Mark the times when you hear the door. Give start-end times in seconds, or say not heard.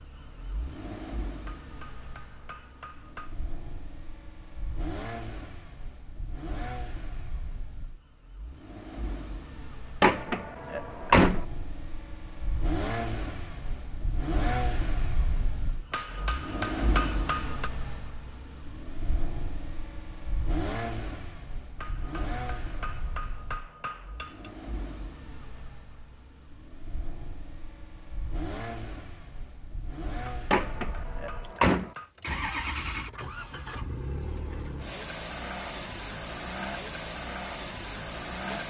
10.0-11.4, 30.5-31.9.